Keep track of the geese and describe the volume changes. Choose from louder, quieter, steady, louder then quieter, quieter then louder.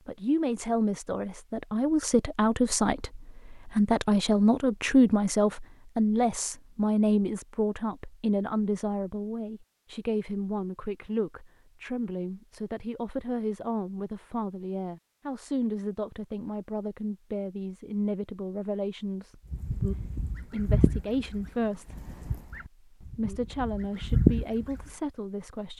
quieter then louder.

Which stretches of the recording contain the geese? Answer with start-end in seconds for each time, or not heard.
19.5-24.9.